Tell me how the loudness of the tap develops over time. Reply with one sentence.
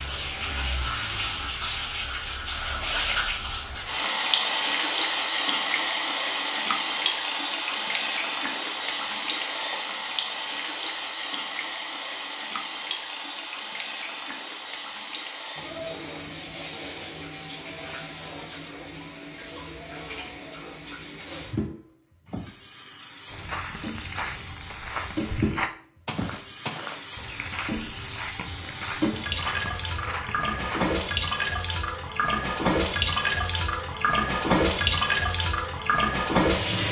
The volume of the tap goes down, then up.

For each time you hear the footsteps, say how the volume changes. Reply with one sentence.
The footsteps can be heard from 23.3 to 30.9 s, at a steady volume.